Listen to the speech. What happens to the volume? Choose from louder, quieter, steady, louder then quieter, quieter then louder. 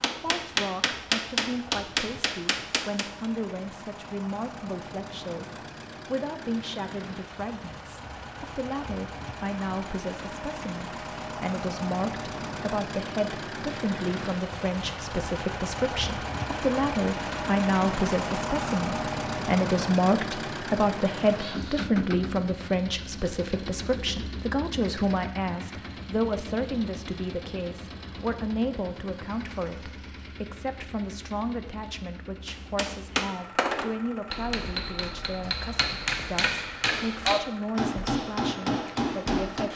louder then quieter.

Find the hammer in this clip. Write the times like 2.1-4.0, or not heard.
0.0-3.3, 32.5-39.7.